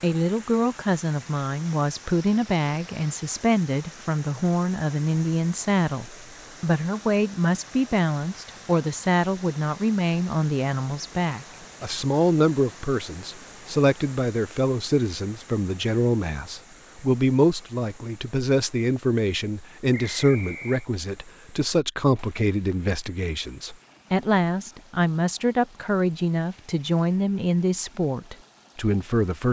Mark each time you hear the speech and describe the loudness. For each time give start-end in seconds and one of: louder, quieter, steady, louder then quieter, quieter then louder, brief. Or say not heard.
0.0-29.4 steady.